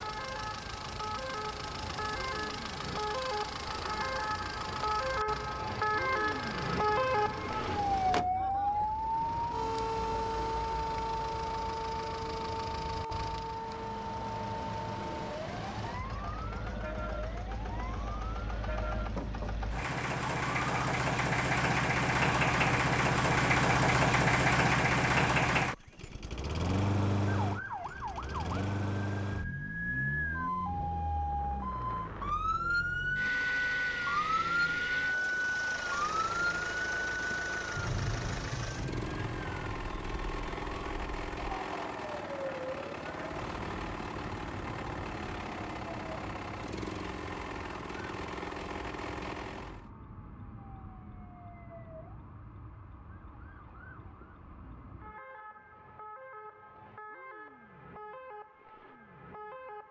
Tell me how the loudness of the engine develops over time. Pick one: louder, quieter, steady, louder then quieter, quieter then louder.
louder then quieter.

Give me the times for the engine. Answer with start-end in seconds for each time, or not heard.
0.0-49.9.